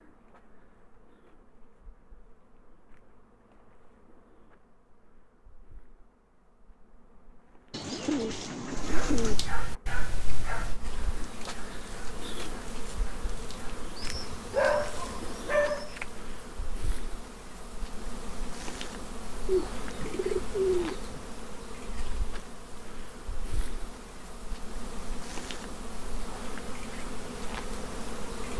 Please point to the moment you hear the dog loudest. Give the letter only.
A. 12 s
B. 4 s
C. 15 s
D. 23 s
C.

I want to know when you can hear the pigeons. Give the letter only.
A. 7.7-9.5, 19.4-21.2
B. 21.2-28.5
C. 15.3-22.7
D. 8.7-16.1
A.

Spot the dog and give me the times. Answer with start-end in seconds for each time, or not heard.
8.7-16.1.